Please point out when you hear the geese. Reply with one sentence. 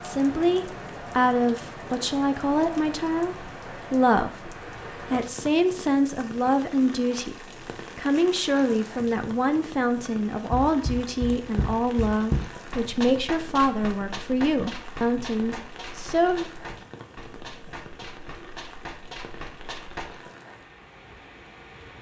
The geese can't be heard in this clip.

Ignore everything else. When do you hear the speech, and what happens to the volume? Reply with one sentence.
You can hear the speech from 0.0 to 16.5 s, at a steady volume.